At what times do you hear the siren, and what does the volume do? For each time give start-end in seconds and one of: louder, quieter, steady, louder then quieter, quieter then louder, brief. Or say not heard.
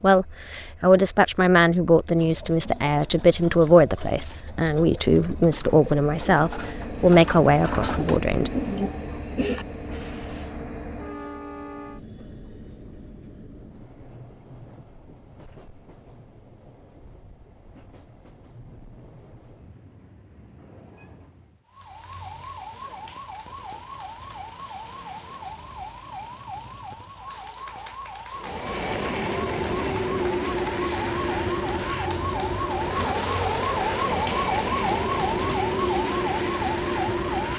21.6-37.5 louder.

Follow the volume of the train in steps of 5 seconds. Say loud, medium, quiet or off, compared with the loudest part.
quiet, medium, quiet, quiet, quiet, loud, loud, loud.